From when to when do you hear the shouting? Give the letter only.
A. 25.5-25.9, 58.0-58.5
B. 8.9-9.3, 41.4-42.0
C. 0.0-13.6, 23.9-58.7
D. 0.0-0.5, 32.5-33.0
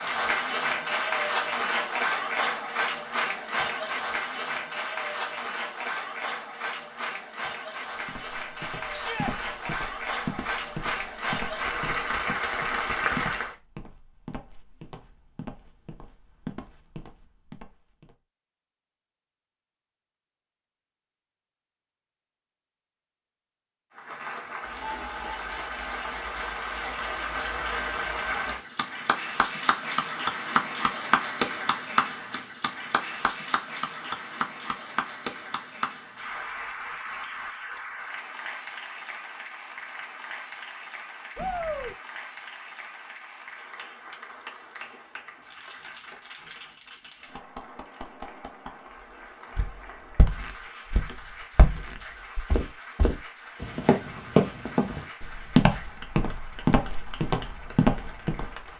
B.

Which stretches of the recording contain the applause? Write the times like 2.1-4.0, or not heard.
0.0-13.6, 23.9-58.7.